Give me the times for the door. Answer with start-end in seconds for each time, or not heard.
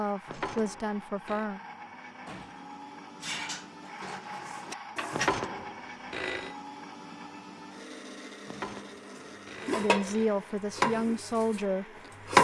1.8-2.7.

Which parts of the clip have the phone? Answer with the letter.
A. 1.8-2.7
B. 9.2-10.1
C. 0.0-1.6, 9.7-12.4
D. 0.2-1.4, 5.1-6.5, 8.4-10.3
D.